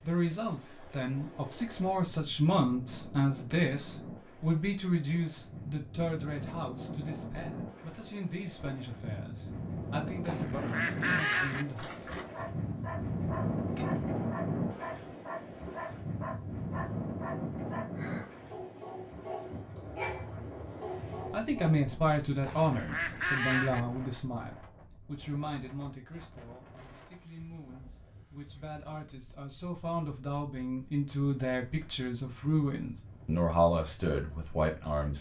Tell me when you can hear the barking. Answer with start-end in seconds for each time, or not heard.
11.3-21.8.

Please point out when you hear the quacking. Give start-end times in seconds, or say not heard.
10.2-11.7, 22.4-23.8.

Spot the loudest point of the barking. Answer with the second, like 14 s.
20 s.